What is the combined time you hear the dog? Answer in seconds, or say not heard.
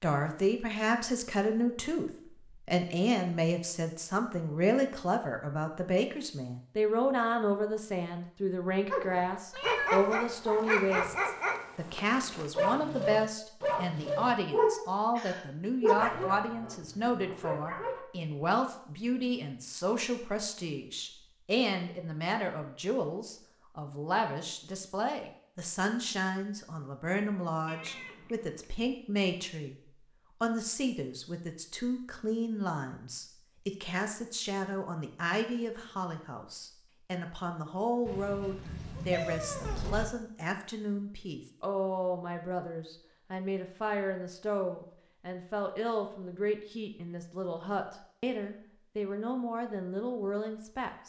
9 s.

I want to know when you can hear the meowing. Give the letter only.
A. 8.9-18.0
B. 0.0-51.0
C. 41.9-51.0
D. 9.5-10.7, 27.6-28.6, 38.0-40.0
D.